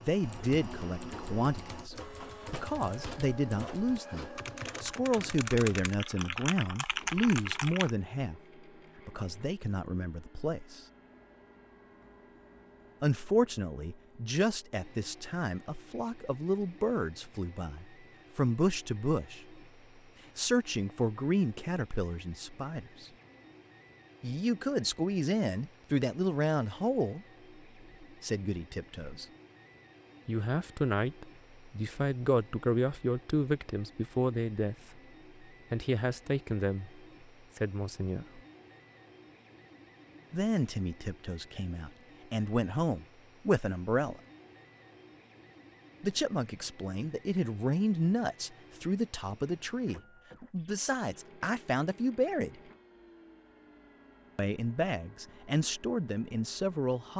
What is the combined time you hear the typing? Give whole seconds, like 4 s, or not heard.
8 s.